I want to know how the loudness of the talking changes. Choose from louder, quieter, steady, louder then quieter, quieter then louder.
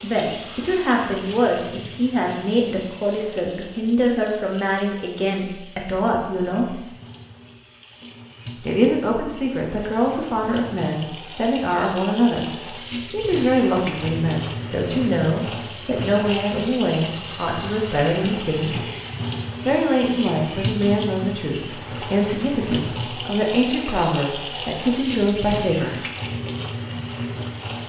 steady.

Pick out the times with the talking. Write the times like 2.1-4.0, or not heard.
0.0-6.8, 8.6-18.8, 19.6-26.0.